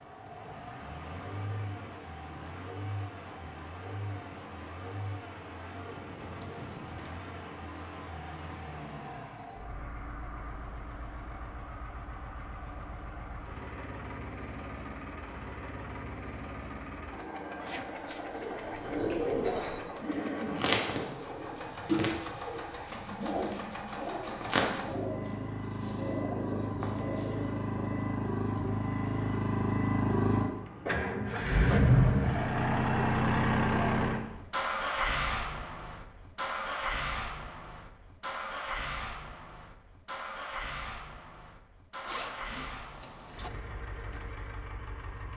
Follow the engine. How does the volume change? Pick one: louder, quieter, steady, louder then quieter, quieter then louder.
louder then quieter.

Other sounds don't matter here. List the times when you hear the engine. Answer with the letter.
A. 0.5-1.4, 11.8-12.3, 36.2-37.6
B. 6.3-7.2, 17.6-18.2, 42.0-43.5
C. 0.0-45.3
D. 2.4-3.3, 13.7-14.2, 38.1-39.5
C.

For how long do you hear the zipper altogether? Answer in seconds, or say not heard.
3 s.